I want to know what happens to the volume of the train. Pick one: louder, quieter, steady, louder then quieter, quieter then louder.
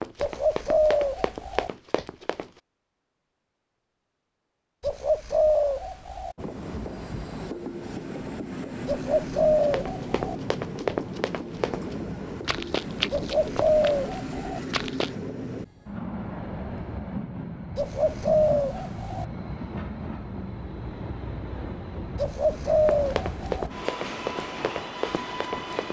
steady.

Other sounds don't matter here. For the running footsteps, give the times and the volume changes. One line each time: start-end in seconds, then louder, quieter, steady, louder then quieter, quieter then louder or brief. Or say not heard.
0.0-2.6 brief
9.6-15.2 quieter
22.9-25.8 brief.